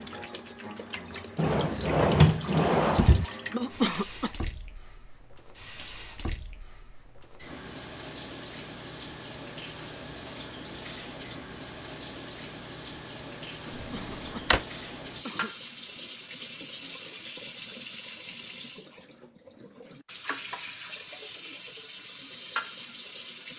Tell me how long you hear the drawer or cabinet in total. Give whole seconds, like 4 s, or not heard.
3 s.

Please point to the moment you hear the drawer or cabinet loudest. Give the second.
2 s.